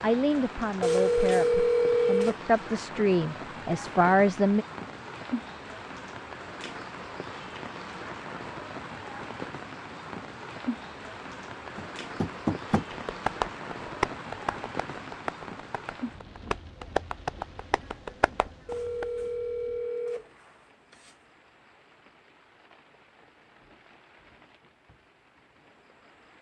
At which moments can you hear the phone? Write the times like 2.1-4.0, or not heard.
0.8-2.4, 18.6-21.1.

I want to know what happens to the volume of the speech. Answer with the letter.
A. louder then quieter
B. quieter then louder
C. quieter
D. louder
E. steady
D.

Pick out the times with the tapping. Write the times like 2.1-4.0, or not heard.
11.8-19.1.